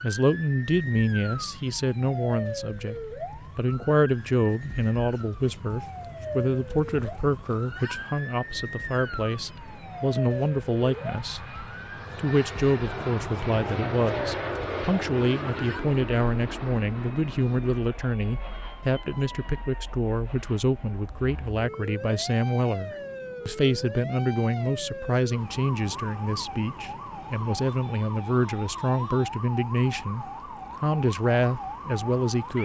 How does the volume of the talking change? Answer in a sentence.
The volume of the talking stays about the same.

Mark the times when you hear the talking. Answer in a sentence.
The talking can be heard from 0.0 to 32.6 s.